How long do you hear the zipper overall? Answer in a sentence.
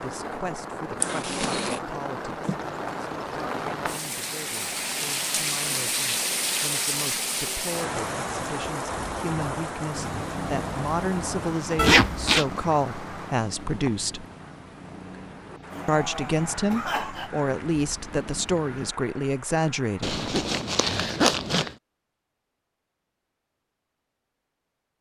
You can hear the zipper for 3 seconds altogether.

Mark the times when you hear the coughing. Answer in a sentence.
The coughing can be heard from 15.7 to 17.3 s.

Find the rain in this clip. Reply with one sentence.
The rain can be heard from 0.0 to 20.1 s.